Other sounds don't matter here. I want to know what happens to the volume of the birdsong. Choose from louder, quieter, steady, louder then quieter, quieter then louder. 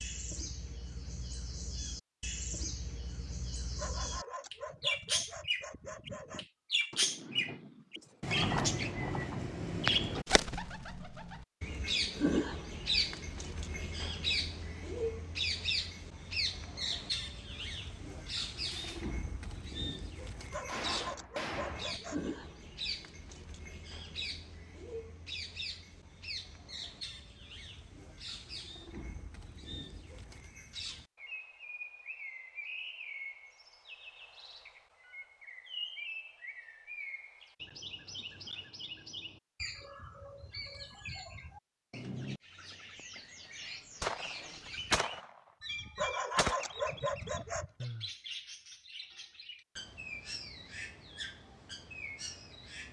quieter.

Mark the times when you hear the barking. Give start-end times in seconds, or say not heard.
3.8-6.5, 20.5-22.2, 46.0-47.9.